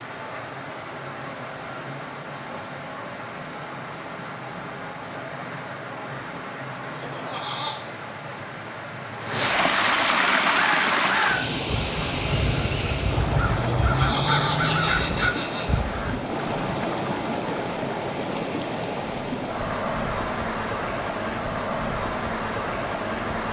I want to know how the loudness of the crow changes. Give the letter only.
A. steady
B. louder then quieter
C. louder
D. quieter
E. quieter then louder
C.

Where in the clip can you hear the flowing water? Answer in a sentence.
The flowing water can be heard from 0.0 to 23.4 s.